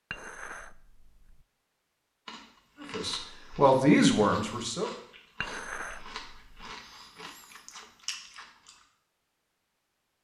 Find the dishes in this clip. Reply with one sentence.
The dishes can be heard from 0.1 to 1.4 s and from 5.4 to 6.7 s.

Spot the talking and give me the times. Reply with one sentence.
The talking can be heard from 2.8 to 4.9 s.